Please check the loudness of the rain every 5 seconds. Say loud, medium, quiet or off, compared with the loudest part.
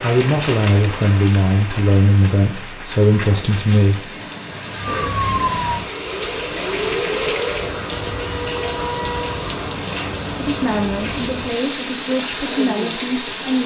medium, loud, loud.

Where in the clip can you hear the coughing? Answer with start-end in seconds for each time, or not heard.
4.8-5.3.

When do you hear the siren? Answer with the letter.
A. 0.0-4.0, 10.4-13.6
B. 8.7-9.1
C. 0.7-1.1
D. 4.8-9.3
D.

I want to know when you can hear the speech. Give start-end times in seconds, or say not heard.
0.0-4.0, 10.4-13.6.